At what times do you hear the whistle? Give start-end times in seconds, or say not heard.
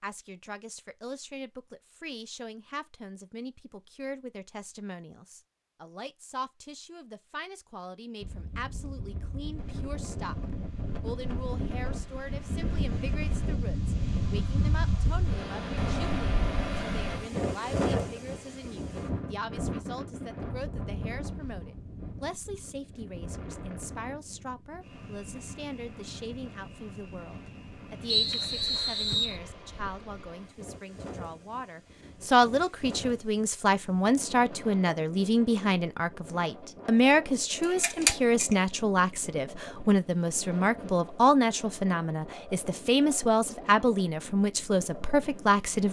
28.1-29.4.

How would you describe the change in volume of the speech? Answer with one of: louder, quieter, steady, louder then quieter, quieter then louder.
louder.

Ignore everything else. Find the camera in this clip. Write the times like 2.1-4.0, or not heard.
37.6-38.5.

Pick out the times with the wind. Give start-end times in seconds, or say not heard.
8.2-45.8.